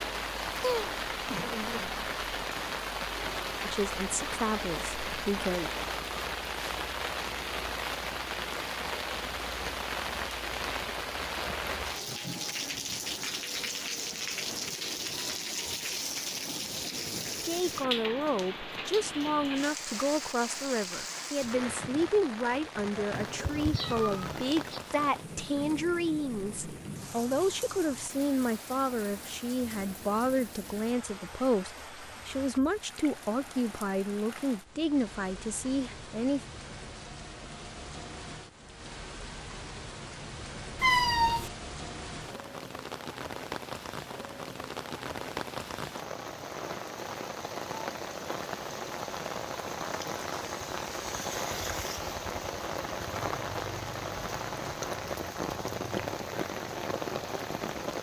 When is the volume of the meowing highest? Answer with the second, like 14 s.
41 s.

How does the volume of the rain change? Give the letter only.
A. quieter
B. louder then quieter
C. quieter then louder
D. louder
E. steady
C.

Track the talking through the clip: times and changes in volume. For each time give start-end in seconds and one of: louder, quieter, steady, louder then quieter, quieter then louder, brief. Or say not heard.
3.6-5.7 brief
17.4-36.5 steady.